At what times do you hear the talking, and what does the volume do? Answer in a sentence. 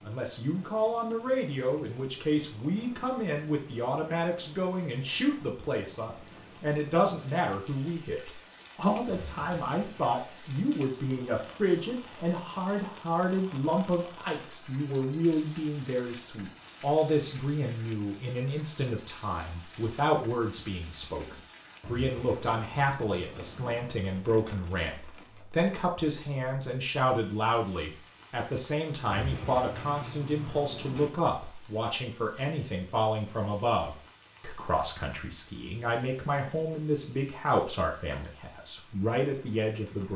You can hear the talking from 0.1 to 40.1 s, at a steady volume.